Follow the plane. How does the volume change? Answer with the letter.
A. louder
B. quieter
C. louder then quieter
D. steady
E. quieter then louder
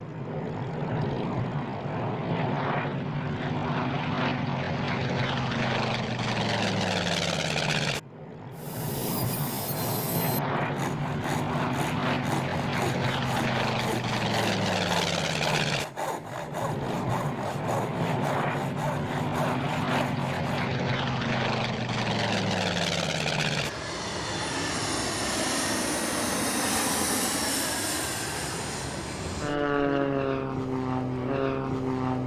D.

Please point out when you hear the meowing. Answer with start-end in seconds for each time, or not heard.
not heard.